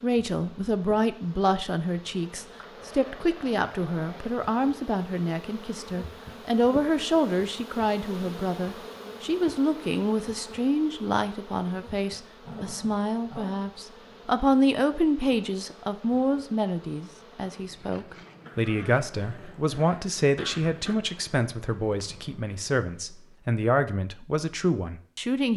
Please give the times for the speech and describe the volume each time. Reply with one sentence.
The speech can be heard from 0.0 to 25.5 s, at a steady volume.